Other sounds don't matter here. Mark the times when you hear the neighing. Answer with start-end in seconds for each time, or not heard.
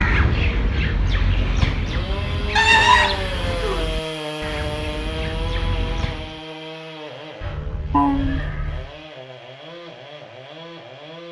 2.5-3.9, 7.4-8.9.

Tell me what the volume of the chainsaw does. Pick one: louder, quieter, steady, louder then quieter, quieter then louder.
quieter.